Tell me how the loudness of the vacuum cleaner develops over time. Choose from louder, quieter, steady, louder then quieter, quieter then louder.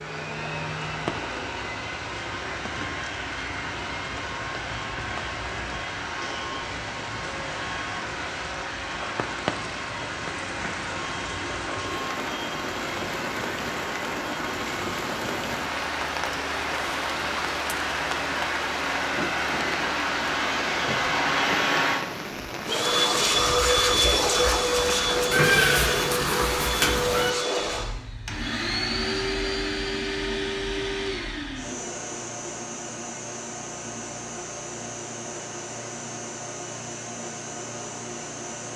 louder then quieter.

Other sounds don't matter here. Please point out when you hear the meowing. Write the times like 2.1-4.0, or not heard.
25.3-27.3.